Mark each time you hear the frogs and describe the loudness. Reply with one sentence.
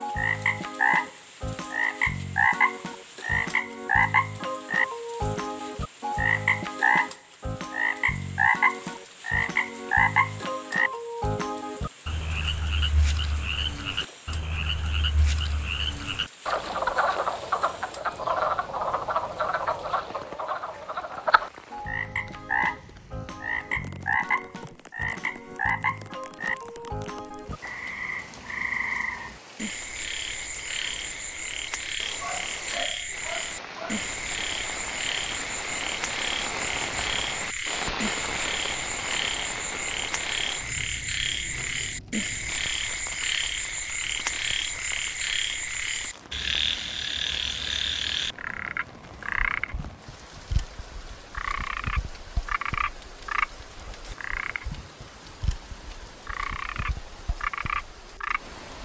You can hear the frogs from 0.0 to 58.5 s, getting quieter.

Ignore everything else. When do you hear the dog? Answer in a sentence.
You can hear the dog from 32.2 to 34.1 s.